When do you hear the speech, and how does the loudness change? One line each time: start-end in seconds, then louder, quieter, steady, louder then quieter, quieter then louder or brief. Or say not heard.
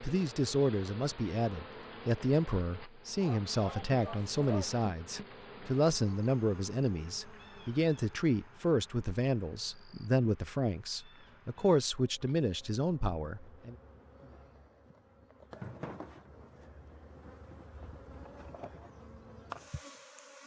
0.0-13.8 steady.